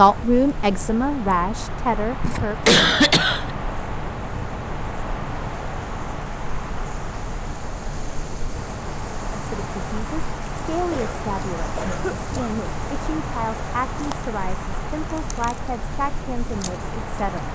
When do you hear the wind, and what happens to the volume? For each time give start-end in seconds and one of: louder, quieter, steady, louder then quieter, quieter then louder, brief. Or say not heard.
0.0-17.4 steady.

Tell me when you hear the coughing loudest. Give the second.
3 s.